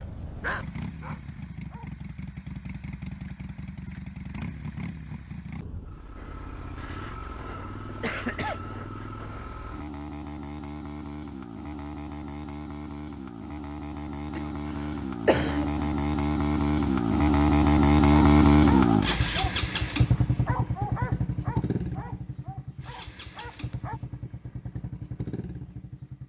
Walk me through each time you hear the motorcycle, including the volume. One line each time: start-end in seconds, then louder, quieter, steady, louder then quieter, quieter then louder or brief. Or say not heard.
0.0-26.2 louder then quieter.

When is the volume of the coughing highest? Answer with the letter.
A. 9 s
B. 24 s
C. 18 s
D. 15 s
D.